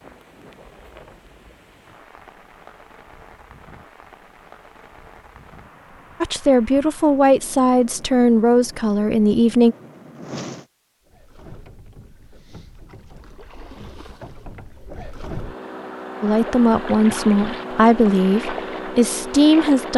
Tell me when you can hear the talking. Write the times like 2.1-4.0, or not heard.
6.2-9.8, 16.2-19.9.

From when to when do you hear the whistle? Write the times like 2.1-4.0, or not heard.
not heard.